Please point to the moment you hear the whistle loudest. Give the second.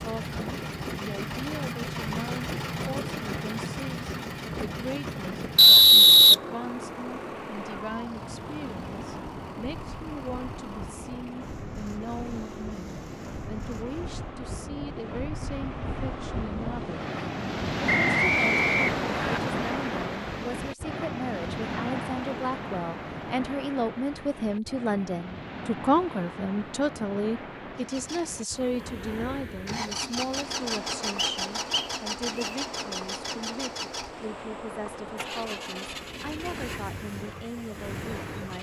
6 s.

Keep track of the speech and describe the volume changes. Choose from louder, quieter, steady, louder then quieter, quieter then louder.
louder then quieter.